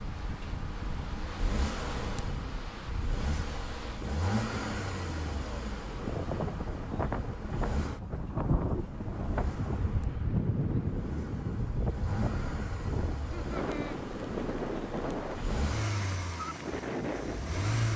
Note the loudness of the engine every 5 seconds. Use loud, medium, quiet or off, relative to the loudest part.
loud, medium, medium, loud.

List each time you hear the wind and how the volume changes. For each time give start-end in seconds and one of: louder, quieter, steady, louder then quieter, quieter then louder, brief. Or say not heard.
0.0-17.9 louder.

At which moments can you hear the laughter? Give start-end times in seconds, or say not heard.
13.2-14.0.